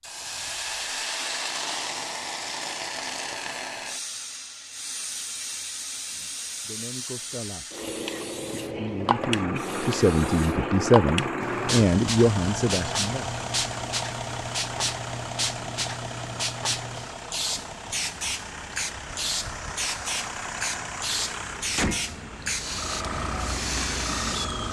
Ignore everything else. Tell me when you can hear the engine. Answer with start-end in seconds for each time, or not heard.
9.0-24.6.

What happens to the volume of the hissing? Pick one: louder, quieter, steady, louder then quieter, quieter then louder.
steady.